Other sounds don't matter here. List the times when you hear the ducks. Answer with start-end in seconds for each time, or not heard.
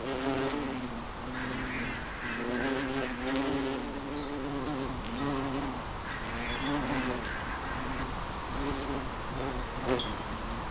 1.3-3.4, 6.0-8.1.